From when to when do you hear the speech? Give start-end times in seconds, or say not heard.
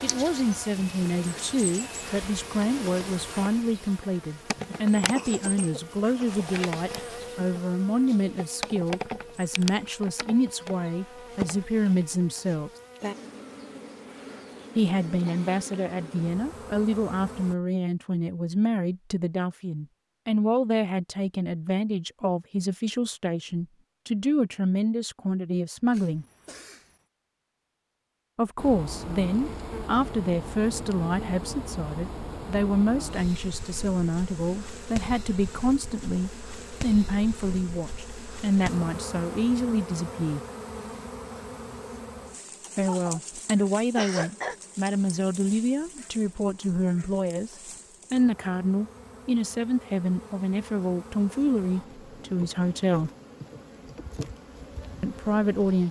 0.0-12.7, 14.8-26.2, 28.4-40.4, 42.8-53.1, 55.0-55.8.